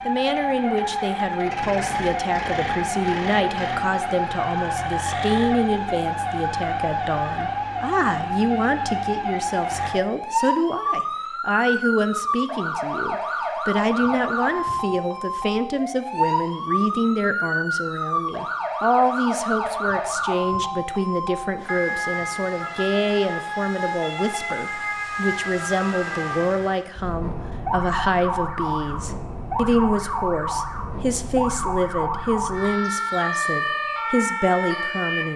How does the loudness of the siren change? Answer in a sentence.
The volume of the siren stays about the same.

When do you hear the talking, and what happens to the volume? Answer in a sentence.
The talking can be heard from 0.1 to 35.3 s, at a steady volume.